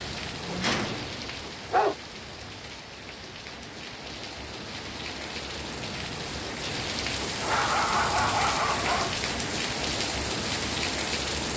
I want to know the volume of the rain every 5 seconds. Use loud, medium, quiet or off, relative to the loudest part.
medium, loud, loud.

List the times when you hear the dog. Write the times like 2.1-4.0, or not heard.
0.5-1.9, 7.4-9.2.